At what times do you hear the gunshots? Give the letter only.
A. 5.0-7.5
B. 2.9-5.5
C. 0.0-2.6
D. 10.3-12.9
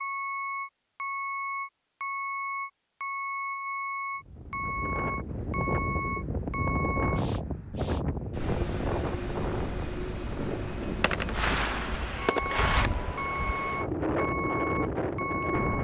D.